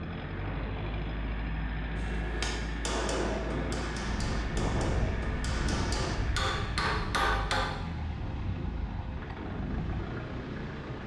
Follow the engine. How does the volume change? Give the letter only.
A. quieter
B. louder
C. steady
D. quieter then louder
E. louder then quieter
C.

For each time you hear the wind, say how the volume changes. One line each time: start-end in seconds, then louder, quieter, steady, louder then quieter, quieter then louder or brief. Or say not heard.
0.0-11.0 louder then quieter.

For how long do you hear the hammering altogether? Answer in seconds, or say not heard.
6 s.